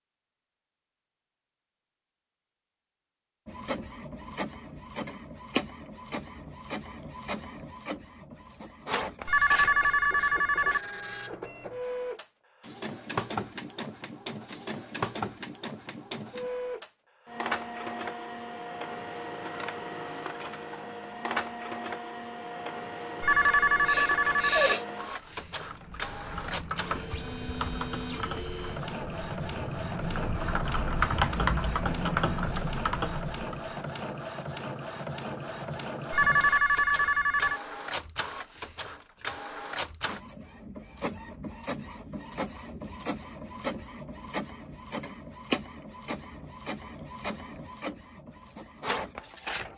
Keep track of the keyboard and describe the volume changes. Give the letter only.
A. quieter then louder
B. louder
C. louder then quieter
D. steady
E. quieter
B.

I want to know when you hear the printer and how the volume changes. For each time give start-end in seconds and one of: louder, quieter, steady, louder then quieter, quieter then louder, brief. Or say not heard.
3.5-49.7 steady.